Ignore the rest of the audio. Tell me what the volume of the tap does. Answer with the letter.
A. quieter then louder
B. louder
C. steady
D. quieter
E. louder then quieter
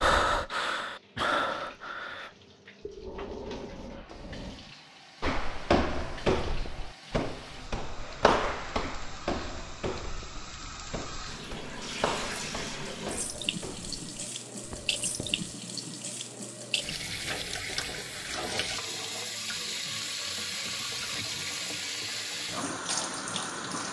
B.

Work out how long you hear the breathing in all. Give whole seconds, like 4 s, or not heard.
5 s.